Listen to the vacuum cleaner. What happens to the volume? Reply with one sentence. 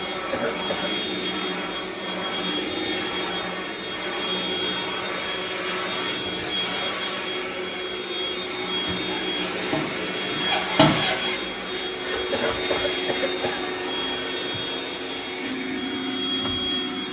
The loudness of the vacuum cleaner stays about the same.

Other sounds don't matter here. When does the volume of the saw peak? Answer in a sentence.
The loudest moment of the saw is at 11 seconds.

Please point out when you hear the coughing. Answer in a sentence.
You can hear the coughing from 0.3 to 0.9 s and from 12.3 to 13.7 s.